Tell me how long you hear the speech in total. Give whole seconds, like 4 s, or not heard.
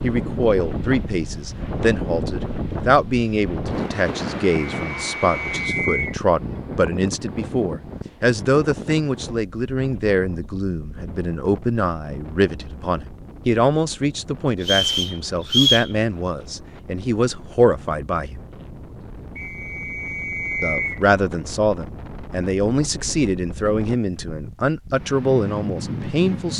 24 s.